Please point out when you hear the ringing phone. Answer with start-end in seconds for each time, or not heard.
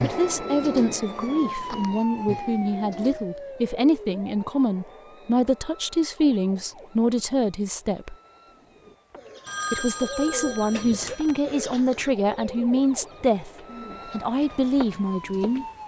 9.4-11.4.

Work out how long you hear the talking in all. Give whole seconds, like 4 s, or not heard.
14 s.